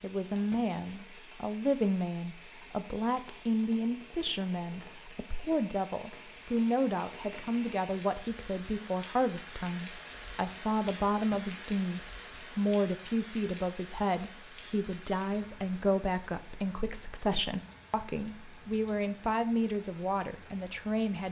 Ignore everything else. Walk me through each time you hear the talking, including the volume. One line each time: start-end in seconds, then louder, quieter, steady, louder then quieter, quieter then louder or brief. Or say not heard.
0.0-21.2 steady.